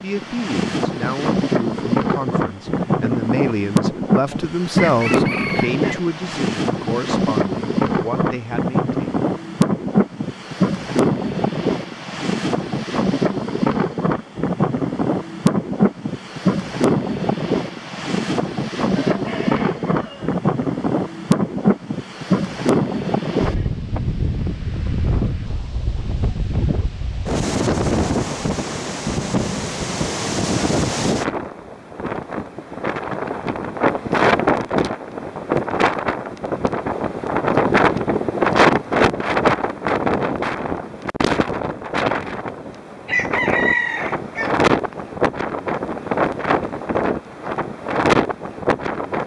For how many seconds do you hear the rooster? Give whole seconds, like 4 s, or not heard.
5 s.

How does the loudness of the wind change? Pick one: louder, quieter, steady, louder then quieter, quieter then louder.
steady.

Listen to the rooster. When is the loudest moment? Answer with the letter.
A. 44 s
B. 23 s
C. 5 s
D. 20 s
A.